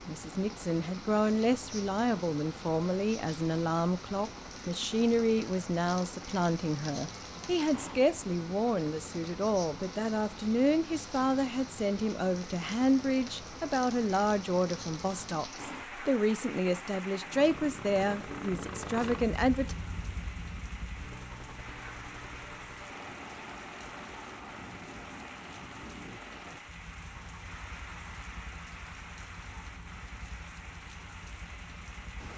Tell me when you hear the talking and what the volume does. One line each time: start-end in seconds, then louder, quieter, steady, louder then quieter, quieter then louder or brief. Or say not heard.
0.1-19.8 steady.